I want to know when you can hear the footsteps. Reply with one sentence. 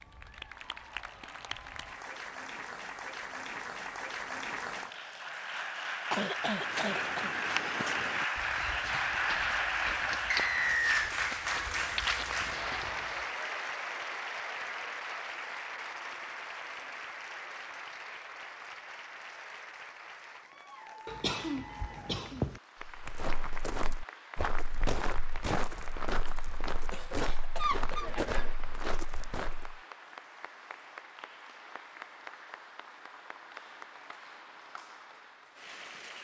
You can hear the footsteps from 6.5 to 13.3 s and from 22.8 to 29.8 s.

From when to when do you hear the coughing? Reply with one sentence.
The coughing can be heard from 6.1 to 7.3 s, from 21.1 to 22.6 s and from 26.9 to 28.6 s.